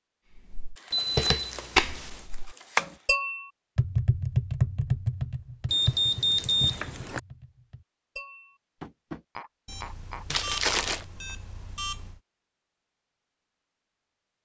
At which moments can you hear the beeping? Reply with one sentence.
You can hear the beeping from 0.9 to 2.3 s, from 5.7 to 7.2 s and from 9.7 to 12.2 s.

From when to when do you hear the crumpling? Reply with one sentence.
You can hear the crumpling from 0.8 to 3.1 s, from 5.8 to 7.2 s and from 10.3 to 11.1 s.